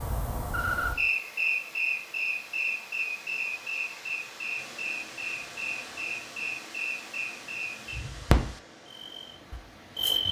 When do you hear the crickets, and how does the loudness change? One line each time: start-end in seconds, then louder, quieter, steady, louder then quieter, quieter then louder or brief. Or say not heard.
0.0-10.2 quieter then louder.